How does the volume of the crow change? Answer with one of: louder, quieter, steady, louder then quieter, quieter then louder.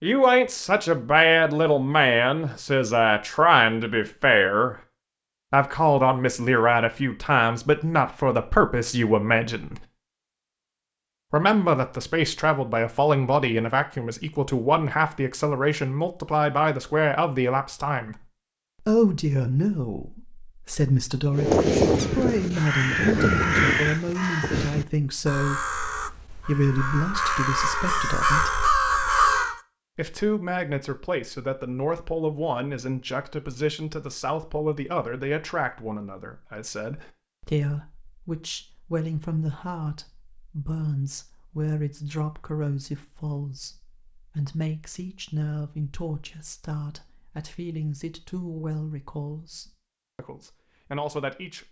quieter then louder.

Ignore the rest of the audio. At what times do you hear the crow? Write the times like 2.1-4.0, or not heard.
21.3-29.6.